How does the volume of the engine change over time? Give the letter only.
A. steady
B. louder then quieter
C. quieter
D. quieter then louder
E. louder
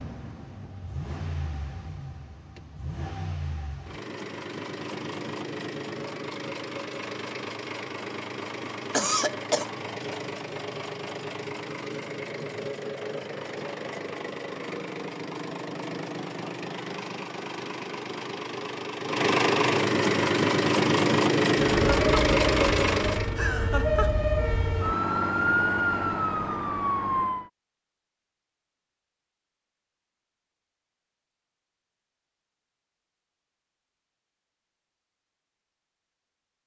E.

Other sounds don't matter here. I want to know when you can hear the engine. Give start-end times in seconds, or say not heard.
0.0-23.4.